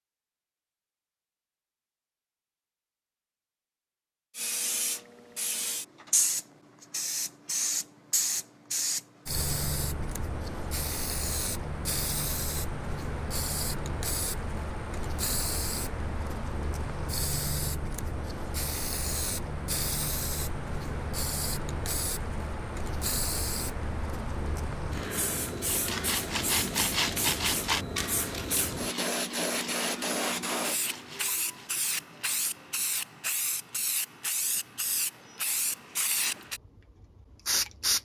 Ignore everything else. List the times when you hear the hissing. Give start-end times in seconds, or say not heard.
4.3-38.0.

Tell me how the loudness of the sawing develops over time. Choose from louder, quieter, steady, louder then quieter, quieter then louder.
quieter.